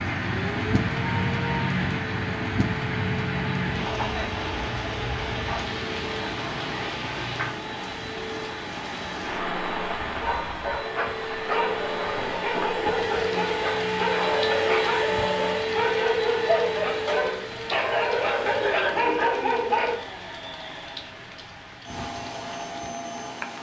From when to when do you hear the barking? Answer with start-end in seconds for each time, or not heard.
9.9-19.9.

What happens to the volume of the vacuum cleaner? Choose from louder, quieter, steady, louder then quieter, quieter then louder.
louder then quieter.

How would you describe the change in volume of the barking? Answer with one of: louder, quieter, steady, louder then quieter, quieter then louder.
louder.